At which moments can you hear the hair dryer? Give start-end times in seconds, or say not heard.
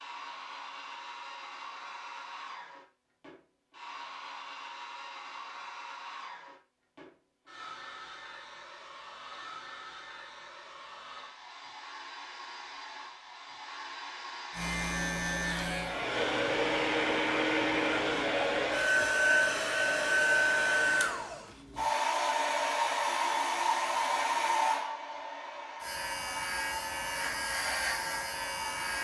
0.0-29.0.